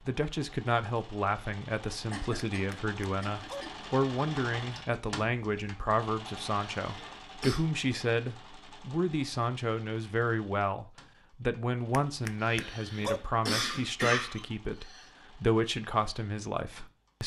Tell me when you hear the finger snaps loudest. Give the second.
13 s.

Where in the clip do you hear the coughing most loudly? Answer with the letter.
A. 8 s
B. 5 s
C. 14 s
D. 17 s
C.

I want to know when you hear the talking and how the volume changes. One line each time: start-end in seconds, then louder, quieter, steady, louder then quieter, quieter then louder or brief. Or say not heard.
0.1-17.2 steady.